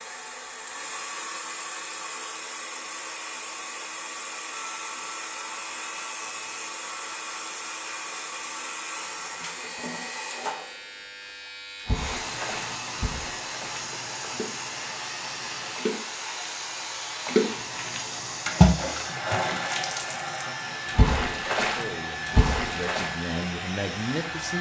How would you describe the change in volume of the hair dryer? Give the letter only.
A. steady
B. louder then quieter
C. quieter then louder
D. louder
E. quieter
A.